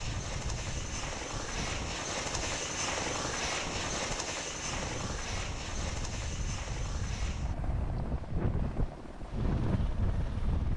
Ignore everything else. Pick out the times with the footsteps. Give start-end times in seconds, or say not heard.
not heard.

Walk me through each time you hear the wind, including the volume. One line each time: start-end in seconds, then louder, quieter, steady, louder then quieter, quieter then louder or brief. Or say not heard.
0.0-10.7 louder.